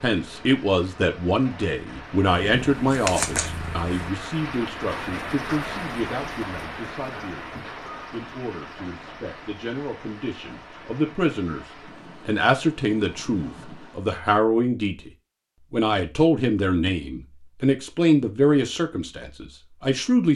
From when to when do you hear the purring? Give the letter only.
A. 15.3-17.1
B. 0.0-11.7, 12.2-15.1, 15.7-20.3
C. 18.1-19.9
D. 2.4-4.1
D.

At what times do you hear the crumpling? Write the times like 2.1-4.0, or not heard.
2.9-3.5.